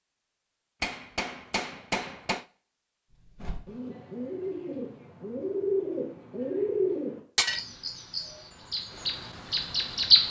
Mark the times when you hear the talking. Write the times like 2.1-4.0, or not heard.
not heard.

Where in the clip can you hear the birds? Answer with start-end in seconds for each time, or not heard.
3.2-10.2.